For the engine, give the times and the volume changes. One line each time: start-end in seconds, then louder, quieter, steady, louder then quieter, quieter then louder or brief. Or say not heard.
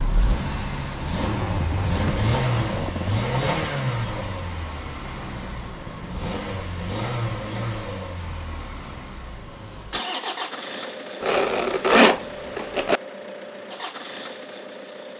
0.0-15.1 quieter.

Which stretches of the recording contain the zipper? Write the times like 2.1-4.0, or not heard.
1.1-3.7, 11.2-13.0.